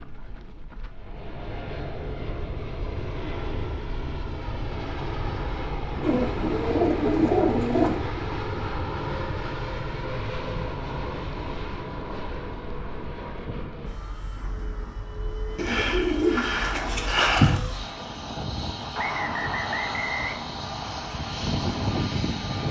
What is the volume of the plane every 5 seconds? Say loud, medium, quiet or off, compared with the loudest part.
medium, loud, medium, medium, loud.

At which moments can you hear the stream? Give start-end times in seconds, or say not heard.
not heard.